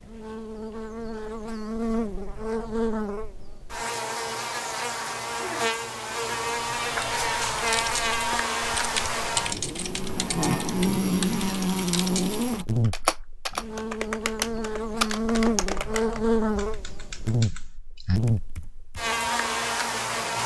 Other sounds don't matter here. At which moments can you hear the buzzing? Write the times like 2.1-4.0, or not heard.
0.0-20.4.